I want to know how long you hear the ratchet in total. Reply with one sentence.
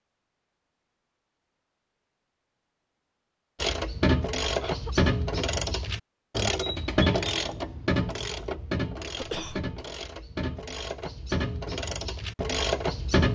You can hear the ratchet for 10 seconds altogether.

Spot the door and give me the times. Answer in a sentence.
The door can't be heard in this clip.